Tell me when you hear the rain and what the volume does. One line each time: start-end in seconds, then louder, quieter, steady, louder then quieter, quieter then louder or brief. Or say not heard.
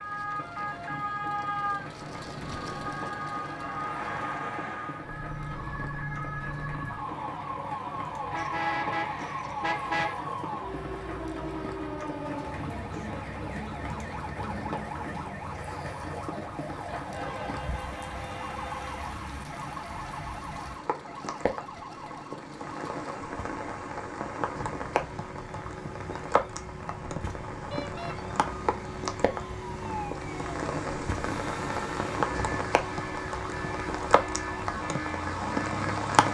0.0-36.3 louder.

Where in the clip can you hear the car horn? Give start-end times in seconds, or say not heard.
8.3-10.2, 16.9-19.1, 27.7-28.1.